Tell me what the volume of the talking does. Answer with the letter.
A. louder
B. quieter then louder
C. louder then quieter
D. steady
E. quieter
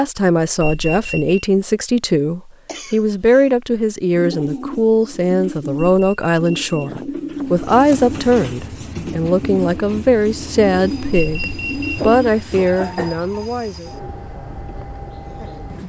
D.